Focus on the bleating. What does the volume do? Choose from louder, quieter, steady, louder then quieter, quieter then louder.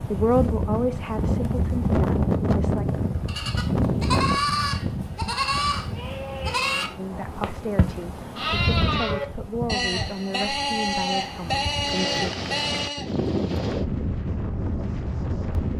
steady.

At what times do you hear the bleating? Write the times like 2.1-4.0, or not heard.
3.2-13.1.